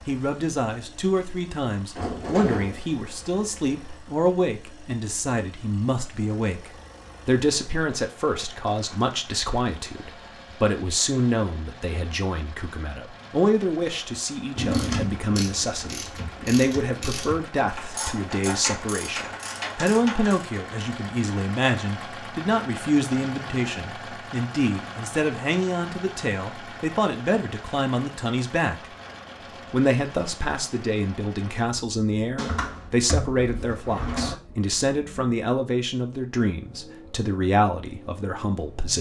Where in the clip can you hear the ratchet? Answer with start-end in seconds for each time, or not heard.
14.7-20.6.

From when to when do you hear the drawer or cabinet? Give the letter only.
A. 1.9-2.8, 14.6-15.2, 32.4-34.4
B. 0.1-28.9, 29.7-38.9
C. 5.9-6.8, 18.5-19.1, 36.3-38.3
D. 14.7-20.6
A.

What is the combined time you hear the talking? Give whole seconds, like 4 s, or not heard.
38 s.